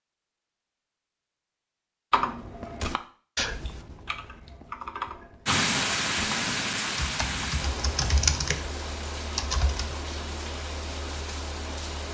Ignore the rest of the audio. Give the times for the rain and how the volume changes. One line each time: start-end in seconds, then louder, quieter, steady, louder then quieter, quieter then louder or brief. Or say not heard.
5.5-12.1 quieter.